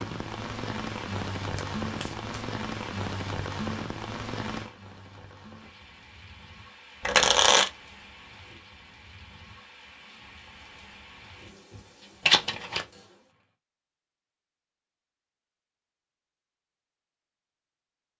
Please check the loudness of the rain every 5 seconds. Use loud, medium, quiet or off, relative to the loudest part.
loud, quiet, quiet, off.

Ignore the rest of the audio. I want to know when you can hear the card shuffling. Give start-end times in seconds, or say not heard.
1.6-2.4, 7.0-7.7, 12.2-12.8.